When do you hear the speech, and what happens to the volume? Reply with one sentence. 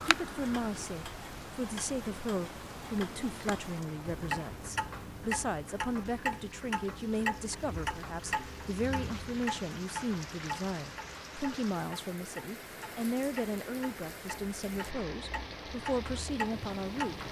You can hear the speech from 0.1 to 17.2 s, at a steady volume.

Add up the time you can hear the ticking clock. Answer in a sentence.
You can hear the ticking clock for 17 seconds altogether.